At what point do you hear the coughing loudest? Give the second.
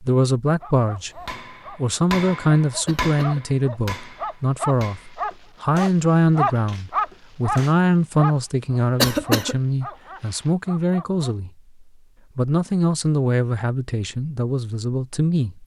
9 s.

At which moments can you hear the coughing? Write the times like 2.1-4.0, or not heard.
2.9-3.5, 9.0-9.6.